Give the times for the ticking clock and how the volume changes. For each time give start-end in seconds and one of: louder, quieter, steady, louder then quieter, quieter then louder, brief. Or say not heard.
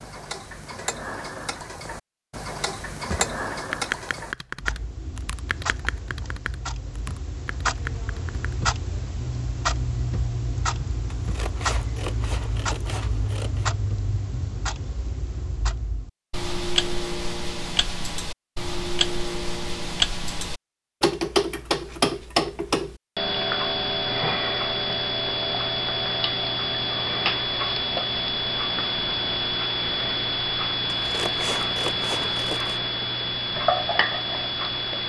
0.0-35.0 louder.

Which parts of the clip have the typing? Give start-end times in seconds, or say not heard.
3.0-8.6.